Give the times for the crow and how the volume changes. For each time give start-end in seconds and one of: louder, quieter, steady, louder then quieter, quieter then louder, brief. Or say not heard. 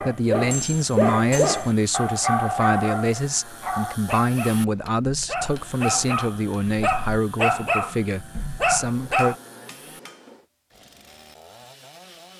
not heard.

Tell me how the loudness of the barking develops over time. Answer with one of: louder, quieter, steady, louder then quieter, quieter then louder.
quieter then louder.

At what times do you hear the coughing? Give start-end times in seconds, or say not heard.
not heard.